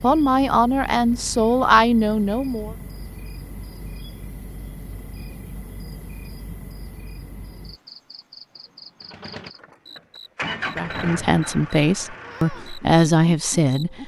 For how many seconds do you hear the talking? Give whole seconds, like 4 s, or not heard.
6 s.